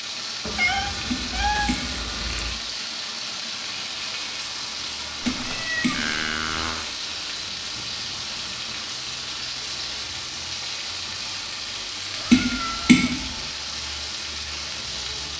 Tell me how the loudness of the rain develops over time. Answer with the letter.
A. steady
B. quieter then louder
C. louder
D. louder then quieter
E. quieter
A.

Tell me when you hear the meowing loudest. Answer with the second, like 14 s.
1 s.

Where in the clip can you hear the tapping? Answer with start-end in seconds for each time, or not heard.
1.1-2.0, 5.2-6.2, 12.3-13.3.